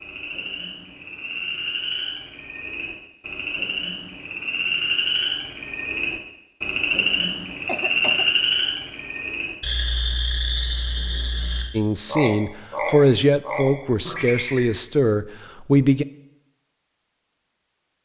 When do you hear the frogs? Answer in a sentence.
You can hear the frogs from 0.0 to 14.7 s.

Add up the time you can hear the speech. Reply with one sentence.
The speech can be heard for 4 seconds in total.